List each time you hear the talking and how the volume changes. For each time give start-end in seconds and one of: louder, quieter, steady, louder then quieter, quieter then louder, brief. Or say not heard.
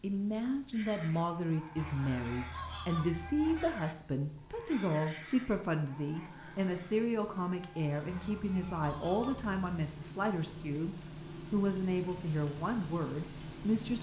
0.0-13.9 steady.